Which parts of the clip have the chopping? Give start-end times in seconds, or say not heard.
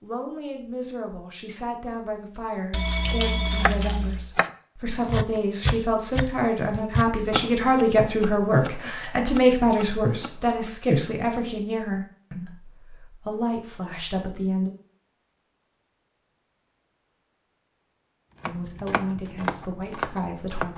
3.0-10.7, 18.4-20.7.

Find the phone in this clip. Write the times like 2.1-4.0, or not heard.
2.7-4.3.